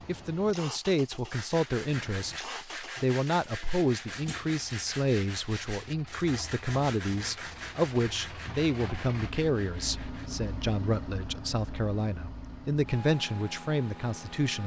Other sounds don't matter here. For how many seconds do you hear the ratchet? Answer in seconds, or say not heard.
not heard.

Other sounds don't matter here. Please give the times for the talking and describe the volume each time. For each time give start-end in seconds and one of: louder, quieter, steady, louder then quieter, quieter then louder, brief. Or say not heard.
0.1-14.6 steady.